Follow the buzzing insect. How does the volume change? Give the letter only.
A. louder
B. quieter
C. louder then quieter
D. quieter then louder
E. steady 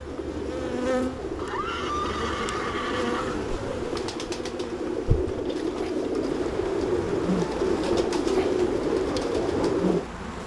E.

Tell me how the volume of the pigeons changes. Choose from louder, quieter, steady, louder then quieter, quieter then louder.
louder.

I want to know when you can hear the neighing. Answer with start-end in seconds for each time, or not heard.
1.4-3.4.